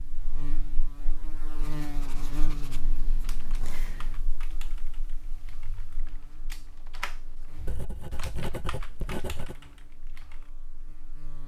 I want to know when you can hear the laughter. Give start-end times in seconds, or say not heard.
not heard.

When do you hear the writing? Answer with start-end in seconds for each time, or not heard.
1.6-4.2, 7.7-9.6.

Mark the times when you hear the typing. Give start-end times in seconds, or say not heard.
3.2-10.5.